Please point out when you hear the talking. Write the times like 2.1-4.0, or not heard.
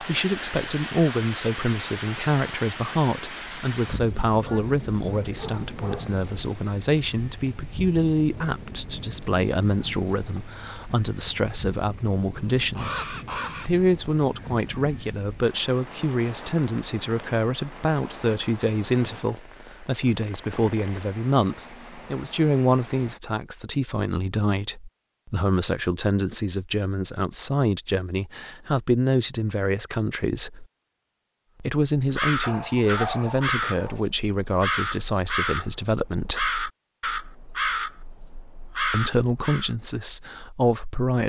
0.0-30.6, 31.6-36.5, 38.9-41.2.